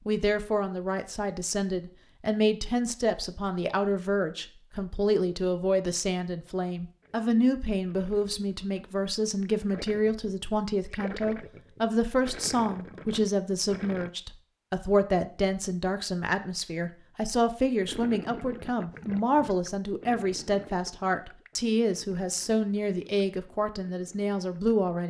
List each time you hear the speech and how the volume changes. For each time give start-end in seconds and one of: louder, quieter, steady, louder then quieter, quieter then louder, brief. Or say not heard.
0.1-25.0 steady.